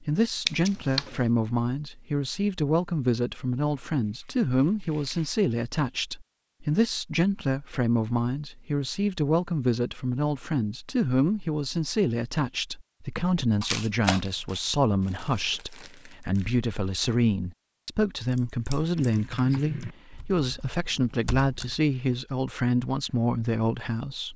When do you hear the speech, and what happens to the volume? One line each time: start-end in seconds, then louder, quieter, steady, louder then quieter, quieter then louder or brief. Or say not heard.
0.0-24.3 steady.